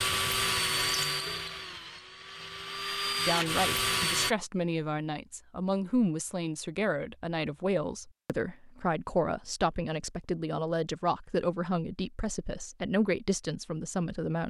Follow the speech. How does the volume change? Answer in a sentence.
The loudness of the speech stays about the same.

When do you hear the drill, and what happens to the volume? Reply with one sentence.
You can hear the drill from 0.0 to 4.3 s, getting quieter then louder.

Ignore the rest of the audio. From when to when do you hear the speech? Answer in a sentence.
You can hear the speech from 3.2 to 14.4 s.